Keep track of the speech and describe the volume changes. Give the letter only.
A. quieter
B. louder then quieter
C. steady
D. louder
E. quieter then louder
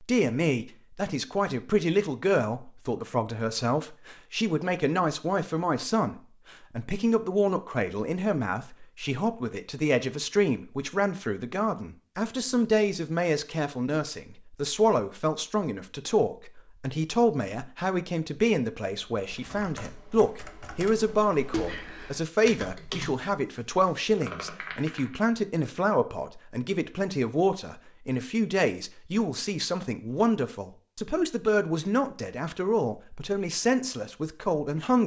C.